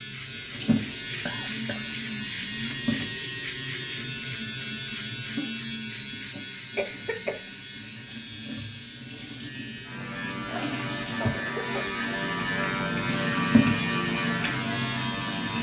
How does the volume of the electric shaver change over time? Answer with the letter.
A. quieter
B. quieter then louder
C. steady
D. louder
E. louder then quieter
B.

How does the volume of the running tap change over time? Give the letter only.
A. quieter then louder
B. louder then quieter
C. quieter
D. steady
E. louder
A.